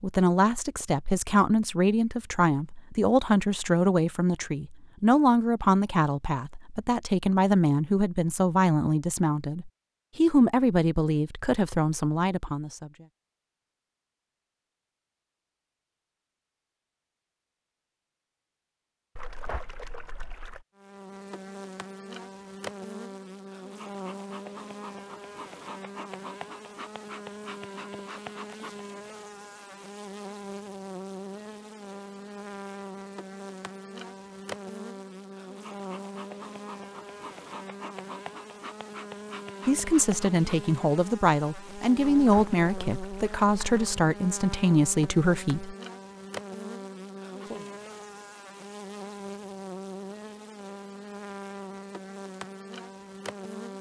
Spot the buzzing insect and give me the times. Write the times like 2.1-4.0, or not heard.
20.8-53.7.